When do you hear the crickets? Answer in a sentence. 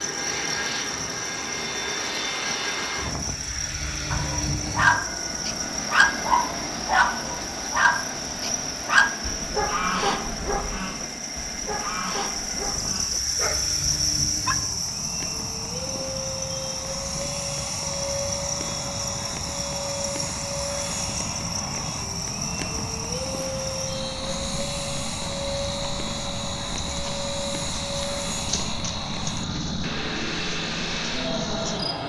You can hear the crickets from 0.0 to 32.0 s.